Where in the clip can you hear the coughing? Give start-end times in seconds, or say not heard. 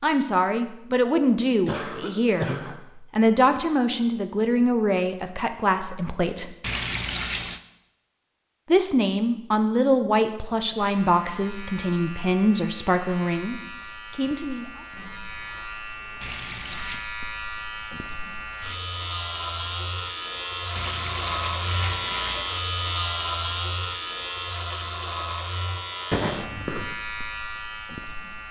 1.6-2.8, 26.1-26.9.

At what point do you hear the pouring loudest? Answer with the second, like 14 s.
7 s.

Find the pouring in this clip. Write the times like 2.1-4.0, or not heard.
6.6-7.6, 16.2-17.1, 20.8-22.6.